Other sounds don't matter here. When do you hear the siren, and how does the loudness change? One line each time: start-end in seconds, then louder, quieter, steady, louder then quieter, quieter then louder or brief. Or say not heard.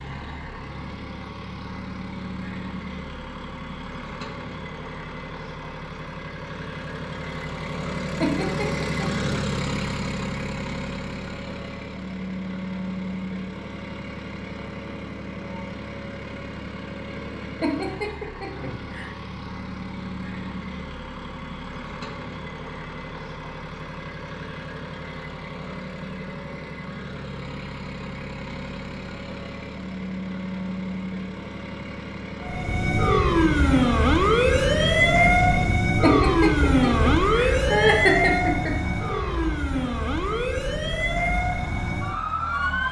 32.4-42.8 quieter.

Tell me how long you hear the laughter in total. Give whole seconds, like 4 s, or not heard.
5 s.